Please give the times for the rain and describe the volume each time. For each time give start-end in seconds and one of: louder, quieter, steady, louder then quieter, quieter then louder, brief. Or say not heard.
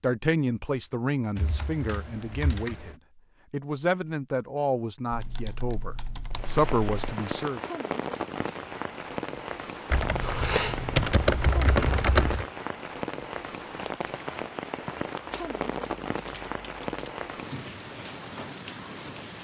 6.3-19.4 steady.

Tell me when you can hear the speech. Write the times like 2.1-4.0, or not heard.
0.0-7.6.